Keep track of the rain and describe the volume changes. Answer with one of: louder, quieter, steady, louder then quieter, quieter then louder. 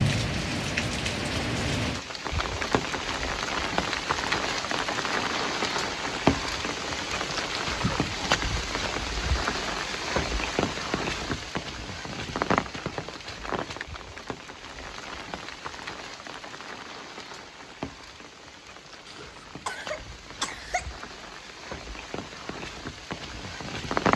quieter.